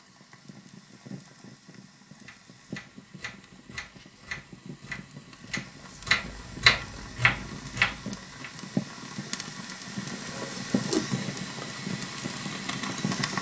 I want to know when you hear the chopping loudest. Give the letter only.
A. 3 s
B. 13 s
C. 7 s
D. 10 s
C.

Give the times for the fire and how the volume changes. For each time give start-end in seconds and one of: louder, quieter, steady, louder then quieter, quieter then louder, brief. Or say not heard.
0.0-13.3 louder.